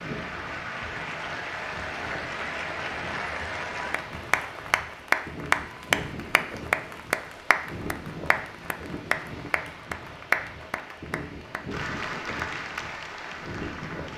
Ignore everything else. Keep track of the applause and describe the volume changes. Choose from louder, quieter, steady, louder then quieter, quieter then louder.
louder then quieter.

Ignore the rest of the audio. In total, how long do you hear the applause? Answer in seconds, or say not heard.
14 s.